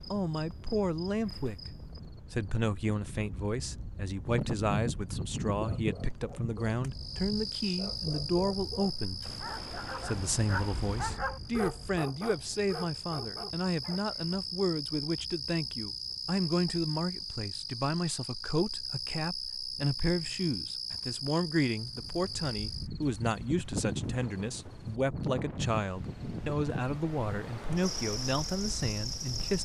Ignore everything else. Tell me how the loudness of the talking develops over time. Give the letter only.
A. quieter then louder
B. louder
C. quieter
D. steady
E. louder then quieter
D.